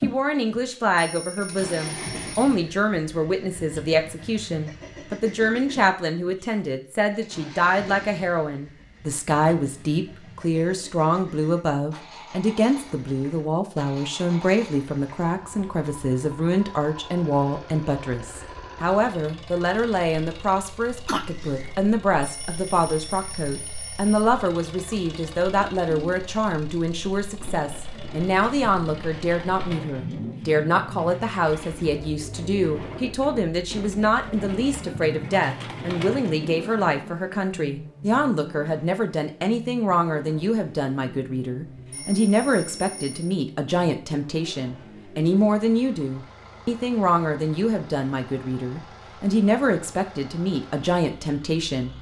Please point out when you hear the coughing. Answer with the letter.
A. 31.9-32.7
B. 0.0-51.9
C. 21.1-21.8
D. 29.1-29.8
C.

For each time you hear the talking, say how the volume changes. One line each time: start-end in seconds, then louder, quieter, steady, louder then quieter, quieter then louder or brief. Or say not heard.
0.0-51.9 steady.